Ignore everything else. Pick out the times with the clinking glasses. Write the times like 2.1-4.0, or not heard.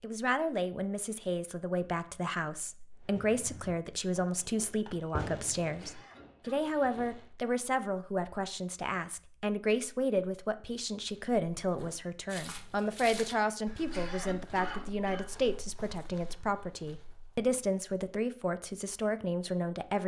not heard.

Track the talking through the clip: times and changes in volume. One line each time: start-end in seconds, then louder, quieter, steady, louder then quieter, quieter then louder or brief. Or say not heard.
0.0-20.0 steady.